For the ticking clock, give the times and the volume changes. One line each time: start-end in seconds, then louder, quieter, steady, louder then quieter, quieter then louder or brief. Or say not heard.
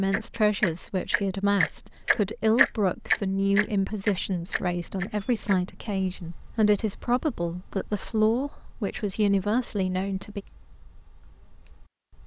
0.0-12.2 quieter.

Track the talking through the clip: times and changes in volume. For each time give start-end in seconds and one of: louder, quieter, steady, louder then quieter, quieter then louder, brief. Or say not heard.
0.0-10.4 steady.